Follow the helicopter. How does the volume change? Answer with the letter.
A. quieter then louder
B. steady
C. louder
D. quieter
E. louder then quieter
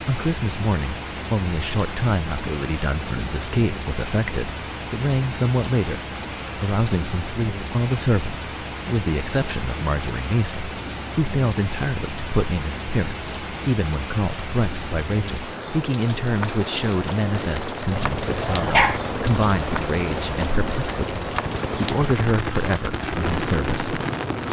B.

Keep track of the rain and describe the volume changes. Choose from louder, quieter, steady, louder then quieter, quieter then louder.
steady.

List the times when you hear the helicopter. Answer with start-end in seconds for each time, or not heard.
17.6-24.4.